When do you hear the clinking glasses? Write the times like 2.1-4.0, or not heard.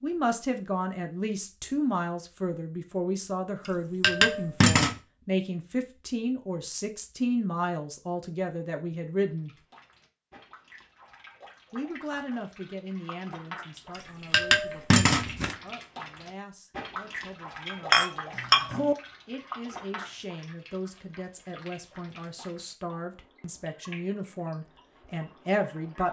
3.6-5.0, 13.9-15.6, 17.6-18.9.